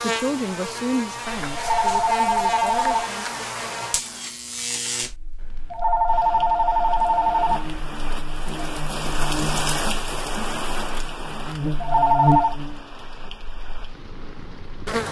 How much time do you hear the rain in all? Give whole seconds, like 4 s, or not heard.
9 s.